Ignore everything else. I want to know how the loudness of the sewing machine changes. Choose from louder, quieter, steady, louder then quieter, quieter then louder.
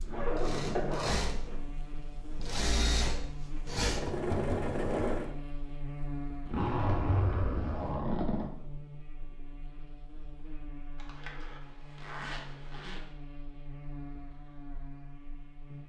quieter then louder.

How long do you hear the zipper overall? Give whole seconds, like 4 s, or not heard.
6 s.